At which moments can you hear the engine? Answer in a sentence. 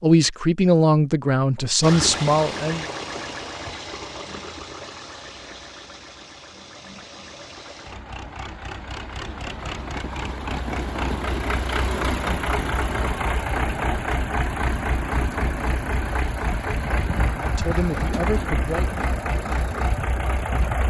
The engine can be heard from 1.8 to 20.8 s.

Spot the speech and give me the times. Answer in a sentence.
You can hear the speech from 0.0 to 2.9 s and from 17.4 to 19.0 s.